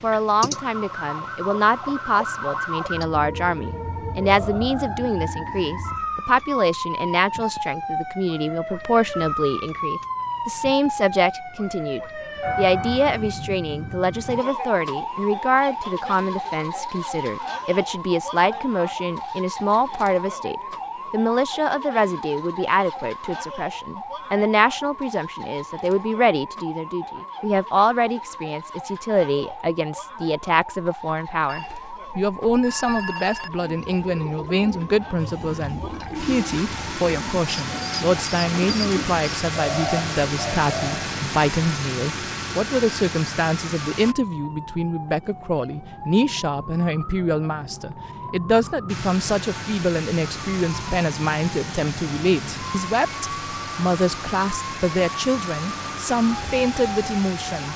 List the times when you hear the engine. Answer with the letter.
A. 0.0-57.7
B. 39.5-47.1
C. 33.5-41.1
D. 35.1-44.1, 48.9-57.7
D.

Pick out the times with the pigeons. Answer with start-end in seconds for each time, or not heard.
33.5-41.1.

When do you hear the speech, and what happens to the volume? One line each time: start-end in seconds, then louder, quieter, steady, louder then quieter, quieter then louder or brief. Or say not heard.
0.0-57.7 steady.